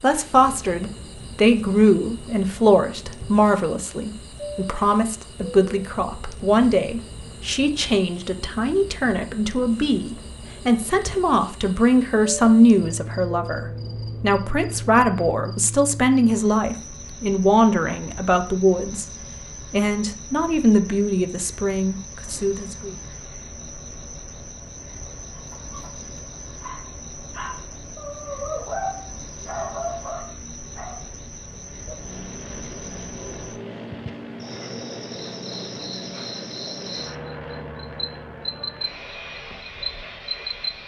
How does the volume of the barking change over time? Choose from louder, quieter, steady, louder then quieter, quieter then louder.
louder.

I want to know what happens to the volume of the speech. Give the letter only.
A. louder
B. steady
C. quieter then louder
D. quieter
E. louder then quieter
B.